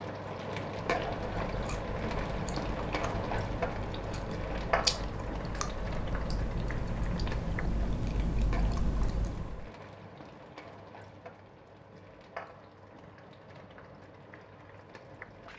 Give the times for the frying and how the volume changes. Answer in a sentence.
The frying can be heard from 0.0 to 15.5 s, getting quieter.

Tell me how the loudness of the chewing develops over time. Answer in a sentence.
The loudness of the chewing goes up.